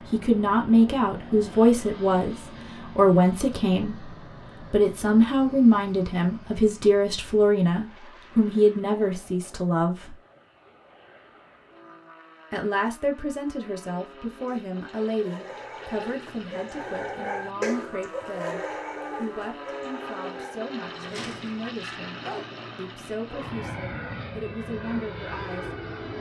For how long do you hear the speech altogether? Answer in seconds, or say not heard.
24 s.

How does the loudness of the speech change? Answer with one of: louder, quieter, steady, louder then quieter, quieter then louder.
quieter.